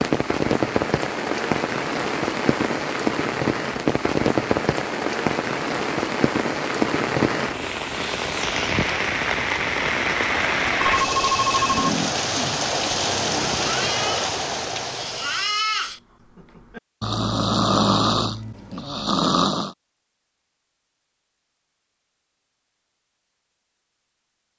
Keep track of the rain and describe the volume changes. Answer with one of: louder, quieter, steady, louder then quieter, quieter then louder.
steady.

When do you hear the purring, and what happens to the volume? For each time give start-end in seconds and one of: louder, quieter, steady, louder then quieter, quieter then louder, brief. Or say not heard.
not heard.